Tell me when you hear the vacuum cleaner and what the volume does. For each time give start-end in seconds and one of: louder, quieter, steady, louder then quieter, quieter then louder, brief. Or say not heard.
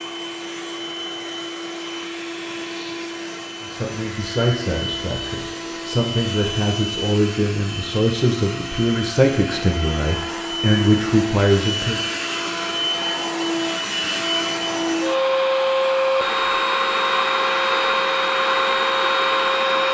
0.0-19.8 louder.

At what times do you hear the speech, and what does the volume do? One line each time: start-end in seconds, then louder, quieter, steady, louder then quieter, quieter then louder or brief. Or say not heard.
3.6-12.0 louder.